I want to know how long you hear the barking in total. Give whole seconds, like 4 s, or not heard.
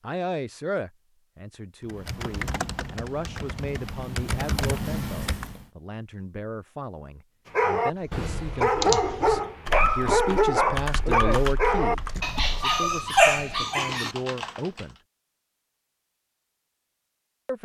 7 s.